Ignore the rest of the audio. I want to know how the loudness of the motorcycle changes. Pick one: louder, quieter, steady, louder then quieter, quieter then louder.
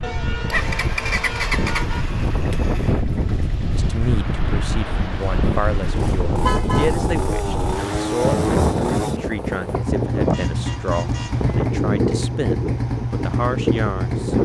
quieter then louder.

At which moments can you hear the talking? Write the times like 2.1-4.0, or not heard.
3.8-14.4.